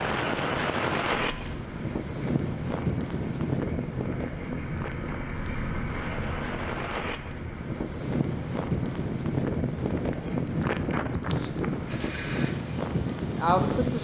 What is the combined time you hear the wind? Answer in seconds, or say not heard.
14 s.